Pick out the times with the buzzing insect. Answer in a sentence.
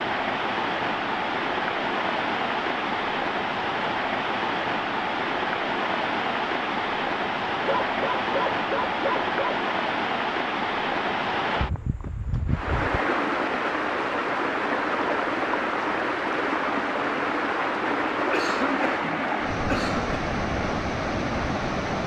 The buzzing insect can't be heard in this clip.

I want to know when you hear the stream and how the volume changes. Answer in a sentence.
You can hear the stream from 0.0 to 22.0 s, at a steady volume.